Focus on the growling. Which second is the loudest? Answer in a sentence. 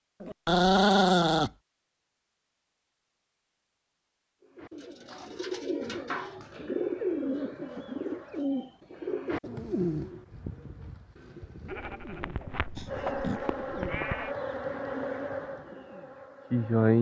The volume of the growling peaks at 1 second.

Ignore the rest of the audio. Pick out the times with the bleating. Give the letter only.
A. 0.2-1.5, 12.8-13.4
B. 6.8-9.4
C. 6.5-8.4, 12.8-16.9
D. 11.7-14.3
D.